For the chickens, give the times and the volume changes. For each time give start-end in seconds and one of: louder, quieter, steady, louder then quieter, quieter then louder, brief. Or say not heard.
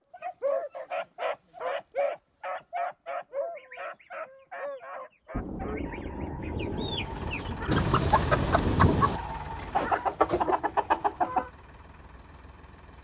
3.5-11.5 louder.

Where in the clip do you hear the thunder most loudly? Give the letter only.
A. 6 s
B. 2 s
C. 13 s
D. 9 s
D.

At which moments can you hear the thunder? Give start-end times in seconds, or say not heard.
5.3-9.2.